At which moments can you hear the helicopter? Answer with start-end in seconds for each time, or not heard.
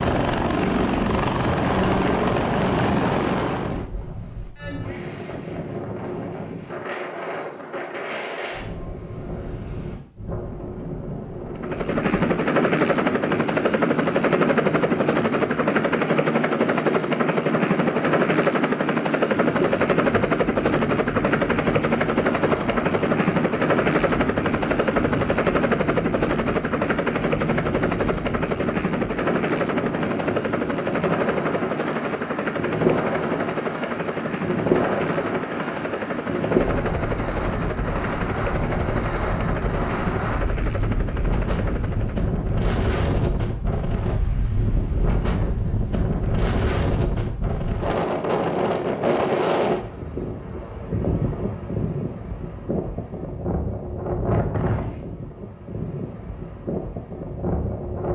0.0-3.9, 11.6-42.4.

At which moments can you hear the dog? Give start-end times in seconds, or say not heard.
not heard.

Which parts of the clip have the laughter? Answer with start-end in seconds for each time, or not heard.
not heard.